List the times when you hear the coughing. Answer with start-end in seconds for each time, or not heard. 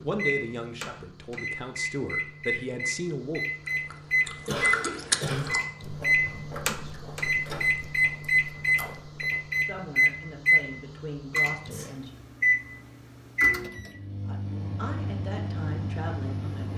4.5-5.6.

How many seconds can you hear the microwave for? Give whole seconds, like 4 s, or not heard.
17 s.